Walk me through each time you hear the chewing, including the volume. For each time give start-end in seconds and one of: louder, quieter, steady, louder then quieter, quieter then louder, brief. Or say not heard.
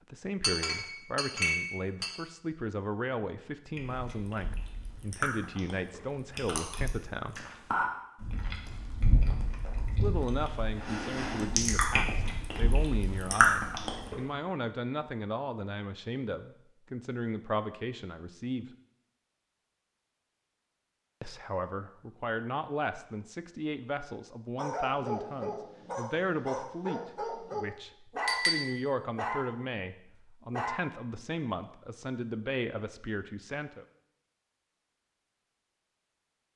3.8-14.2 louder.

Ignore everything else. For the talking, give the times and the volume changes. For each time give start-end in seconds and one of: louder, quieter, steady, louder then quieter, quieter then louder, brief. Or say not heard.
0.1-7.4 steady
9.8-18.6 steady
21.2-33.9 steady.